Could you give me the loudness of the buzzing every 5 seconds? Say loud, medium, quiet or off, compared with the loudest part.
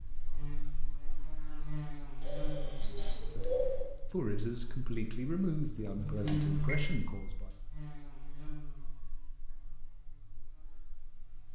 medium, loud, quiet.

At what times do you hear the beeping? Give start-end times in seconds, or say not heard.
2.2-3.9, 6.2-7.0.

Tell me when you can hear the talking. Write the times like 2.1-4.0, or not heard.
3.2-7.5.